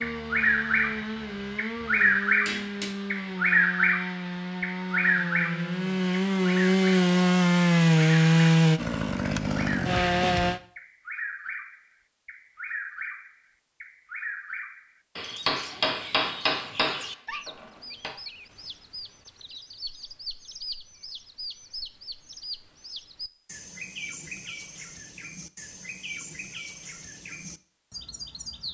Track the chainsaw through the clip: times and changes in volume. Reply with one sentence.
You can hear the chainsaw from 0.0 to 10.6 s, getting louder.